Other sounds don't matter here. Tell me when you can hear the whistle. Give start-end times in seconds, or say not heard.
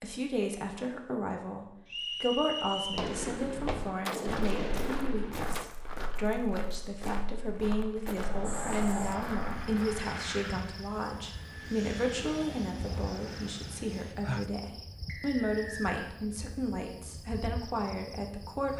1.9-3.1, 15.1-16.1.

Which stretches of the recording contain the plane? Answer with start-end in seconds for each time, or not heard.
8.2-14.2.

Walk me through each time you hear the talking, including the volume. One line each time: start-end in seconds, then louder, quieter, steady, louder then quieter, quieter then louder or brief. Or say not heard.
0.0-18.7 steady.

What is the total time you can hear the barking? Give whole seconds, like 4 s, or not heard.
not heard.